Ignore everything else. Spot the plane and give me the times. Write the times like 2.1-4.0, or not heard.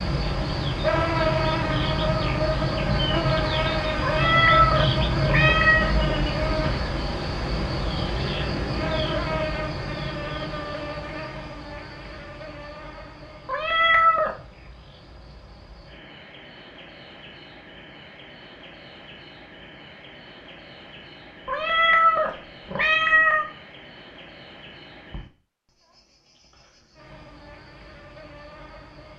not heard.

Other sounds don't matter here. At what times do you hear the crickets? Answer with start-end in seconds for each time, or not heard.
0.0-29.1.